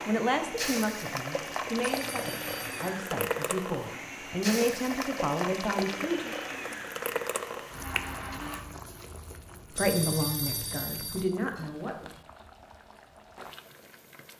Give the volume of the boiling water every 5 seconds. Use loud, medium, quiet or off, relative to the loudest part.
loud, loud, quiet.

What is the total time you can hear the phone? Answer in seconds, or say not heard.
3 s.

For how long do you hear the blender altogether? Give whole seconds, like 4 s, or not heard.
9 s.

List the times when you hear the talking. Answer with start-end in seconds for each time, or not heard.
0.1-6.3, 9.8-12.1.